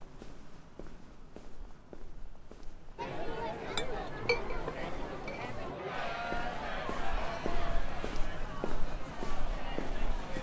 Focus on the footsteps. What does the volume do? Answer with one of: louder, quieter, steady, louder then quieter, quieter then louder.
louder.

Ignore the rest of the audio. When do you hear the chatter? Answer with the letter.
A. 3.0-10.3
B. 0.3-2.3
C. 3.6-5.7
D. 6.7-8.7
A.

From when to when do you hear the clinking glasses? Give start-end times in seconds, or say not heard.
3.6-5.7.